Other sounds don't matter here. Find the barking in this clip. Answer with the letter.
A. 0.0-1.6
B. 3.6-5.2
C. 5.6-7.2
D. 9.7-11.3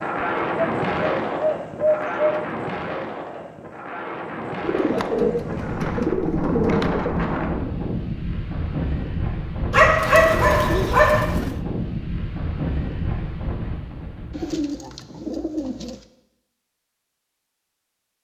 D.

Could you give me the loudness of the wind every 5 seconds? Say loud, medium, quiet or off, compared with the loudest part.
loud, loud, loud, off.